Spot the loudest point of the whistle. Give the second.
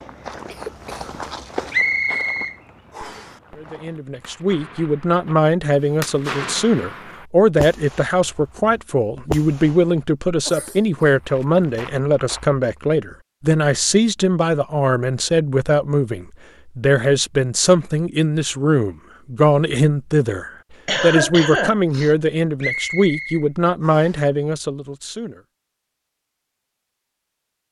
2 s.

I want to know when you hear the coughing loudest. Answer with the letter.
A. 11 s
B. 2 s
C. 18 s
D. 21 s
D.